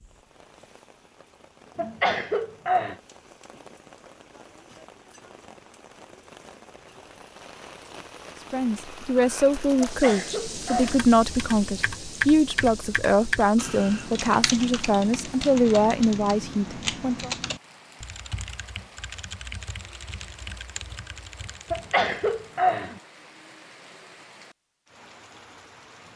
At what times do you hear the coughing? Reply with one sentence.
You can hear the coughing from 1.8 to 3.0 s, from 9.8 to 11.1 s and from 21.7 to 23.0 s.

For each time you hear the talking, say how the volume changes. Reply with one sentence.
The talking can be heard from 8.5 to 17.3 s, at a steady volume.